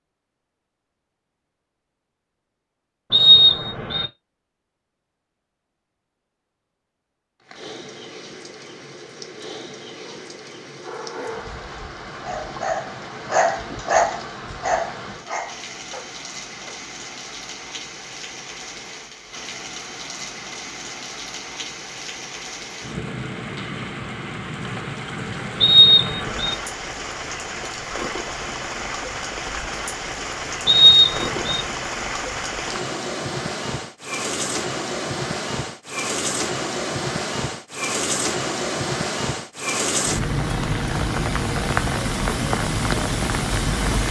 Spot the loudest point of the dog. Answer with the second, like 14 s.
14 s.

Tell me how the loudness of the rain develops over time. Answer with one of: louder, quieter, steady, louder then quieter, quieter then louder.
louder.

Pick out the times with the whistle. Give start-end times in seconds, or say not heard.
3.1-4.0, 25.6-26.6, 30.6-31.6.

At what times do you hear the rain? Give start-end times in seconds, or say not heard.
7.4-44.0.